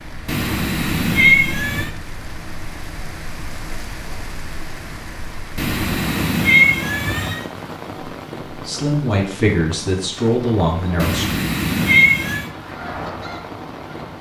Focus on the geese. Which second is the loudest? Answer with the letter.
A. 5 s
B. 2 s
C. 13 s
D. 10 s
C.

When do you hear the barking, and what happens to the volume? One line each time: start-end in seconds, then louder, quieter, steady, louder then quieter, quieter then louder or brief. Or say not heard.
not heard.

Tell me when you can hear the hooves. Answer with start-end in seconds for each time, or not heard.
not heard.